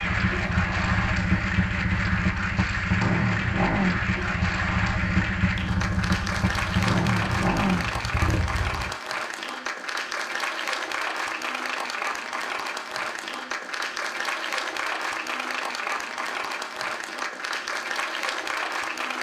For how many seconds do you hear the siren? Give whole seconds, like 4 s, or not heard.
not heard.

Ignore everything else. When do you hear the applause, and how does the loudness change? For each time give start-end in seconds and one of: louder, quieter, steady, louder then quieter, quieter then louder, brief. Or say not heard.
0.0-19.1 steady.